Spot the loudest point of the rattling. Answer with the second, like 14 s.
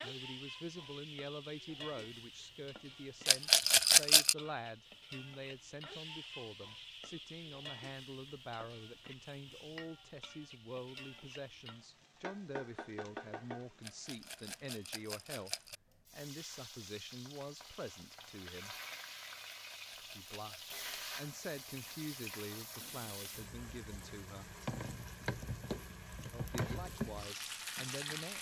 4 s.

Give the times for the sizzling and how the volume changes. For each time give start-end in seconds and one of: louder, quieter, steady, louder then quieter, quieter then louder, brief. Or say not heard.
0.0-28.3 louder.